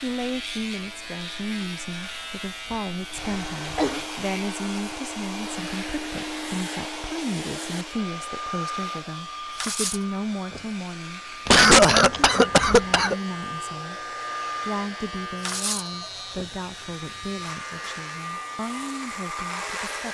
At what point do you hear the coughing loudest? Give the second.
12 s.